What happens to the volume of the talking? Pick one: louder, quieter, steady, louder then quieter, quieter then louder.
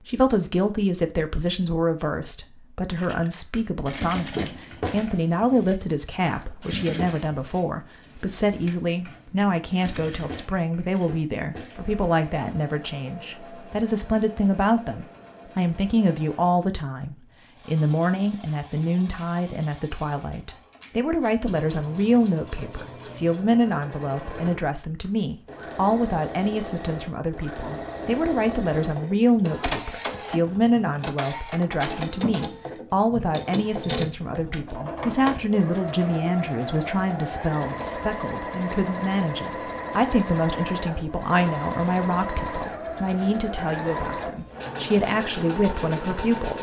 steady.